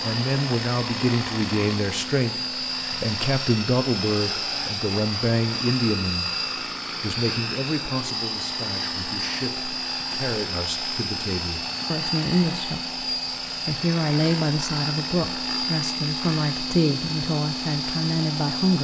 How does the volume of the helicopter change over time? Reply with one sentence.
The loudness of the helicopter stays about the same.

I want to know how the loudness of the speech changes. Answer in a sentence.
The volume of the speech goes down, then up.